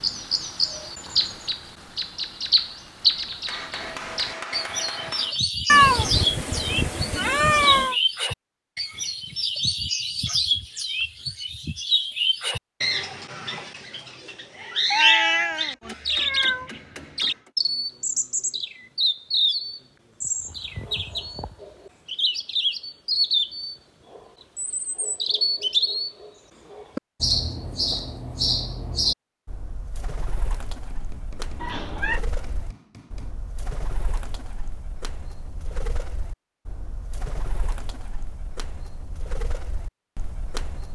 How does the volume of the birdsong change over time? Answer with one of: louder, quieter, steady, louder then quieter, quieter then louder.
quieter.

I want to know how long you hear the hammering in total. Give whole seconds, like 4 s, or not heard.
6 s.